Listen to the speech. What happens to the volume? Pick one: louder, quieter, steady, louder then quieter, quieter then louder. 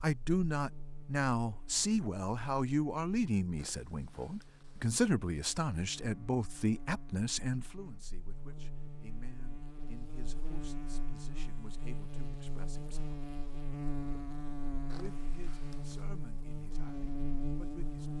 quieter.